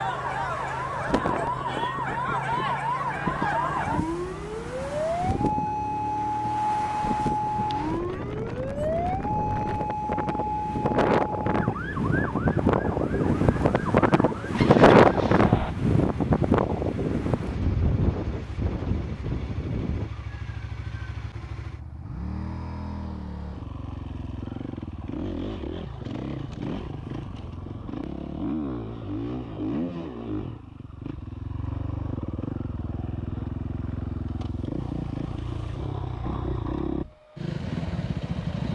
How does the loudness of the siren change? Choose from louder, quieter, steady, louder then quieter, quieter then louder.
quieter.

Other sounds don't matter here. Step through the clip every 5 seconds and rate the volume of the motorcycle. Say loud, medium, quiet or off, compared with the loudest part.
medium, medium, medium, medium, medium, loud, loud, loud.